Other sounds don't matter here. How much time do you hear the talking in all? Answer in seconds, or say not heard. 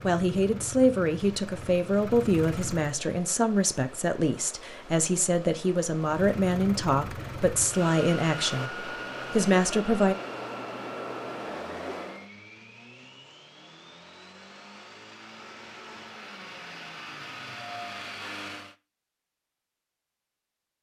10 s.